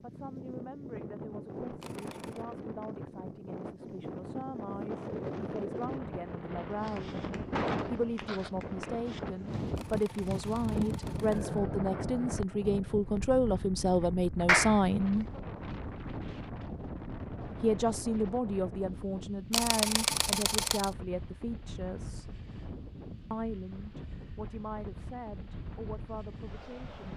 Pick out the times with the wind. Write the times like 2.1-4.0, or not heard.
0.0-27.1.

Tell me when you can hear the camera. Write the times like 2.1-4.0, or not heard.
1.8-2.5, 9.8-11.6, 19.5-20.9.